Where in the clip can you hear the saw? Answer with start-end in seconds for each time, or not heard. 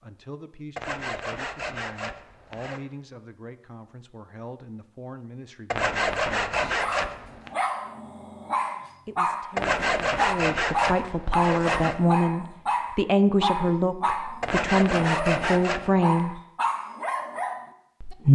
0.8-2.8, 5.7-7.5, 9.6-12.0, 14.4-16.1.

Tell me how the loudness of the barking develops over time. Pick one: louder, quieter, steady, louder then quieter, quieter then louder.
steady.